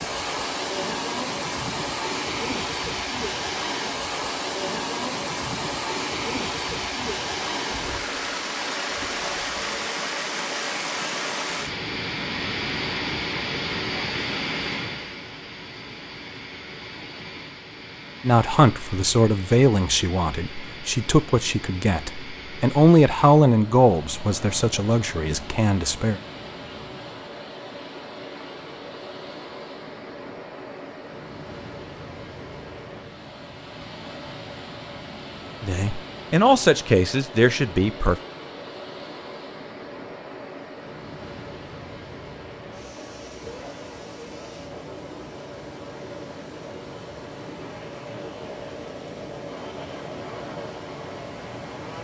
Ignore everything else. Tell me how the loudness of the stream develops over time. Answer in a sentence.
The loudness of the stream goes down.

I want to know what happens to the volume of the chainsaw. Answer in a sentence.
The volume of the chainsaw stays about the same.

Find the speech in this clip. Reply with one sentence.
You can hear the speech from 18.2 to 26.2 s and from 35.6 to 38.1 s.